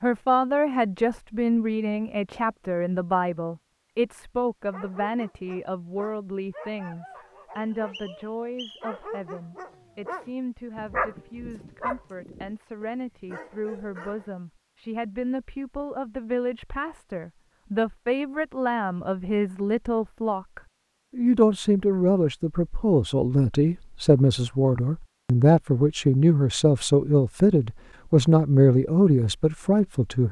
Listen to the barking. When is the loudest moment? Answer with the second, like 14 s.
11 s.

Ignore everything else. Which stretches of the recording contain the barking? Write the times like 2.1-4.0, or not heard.
4.7-14.3.